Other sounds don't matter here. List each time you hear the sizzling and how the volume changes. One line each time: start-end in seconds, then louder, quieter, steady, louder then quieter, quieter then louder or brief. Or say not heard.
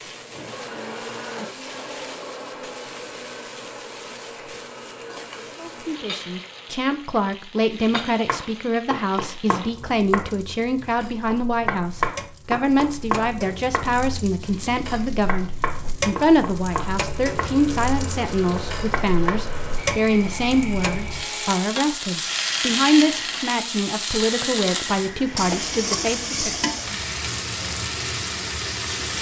0.0-29.1 louder.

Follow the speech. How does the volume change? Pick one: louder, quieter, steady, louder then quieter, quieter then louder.
steady.